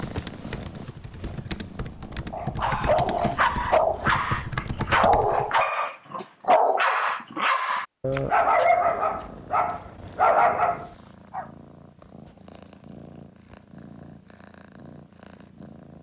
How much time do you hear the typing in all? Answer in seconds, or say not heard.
6 s.